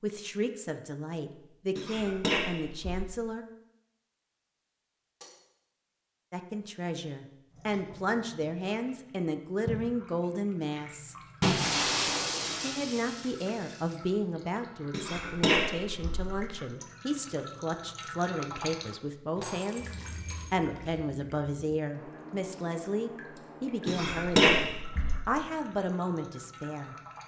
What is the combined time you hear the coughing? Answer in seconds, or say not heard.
4 s.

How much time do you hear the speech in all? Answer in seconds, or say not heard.
22 s.